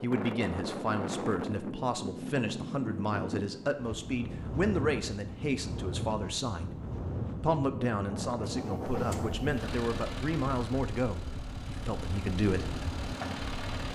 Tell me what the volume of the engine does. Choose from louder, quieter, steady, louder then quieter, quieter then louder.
quieter then louder.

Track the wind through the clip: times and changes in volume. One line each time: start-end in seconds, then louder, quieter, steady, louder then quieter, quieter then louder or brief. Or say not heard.
0.0-13.8 quieter.